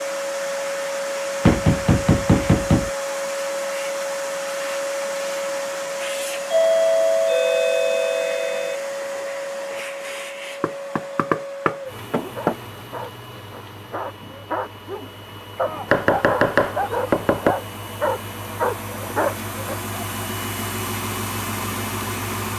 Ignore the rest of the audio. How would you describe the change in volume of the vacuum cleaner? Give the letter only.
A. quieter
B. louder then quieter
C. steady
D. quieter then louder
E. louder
D.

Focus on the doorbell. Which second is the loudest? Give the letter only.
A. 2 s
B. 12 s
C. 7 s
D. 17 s
C.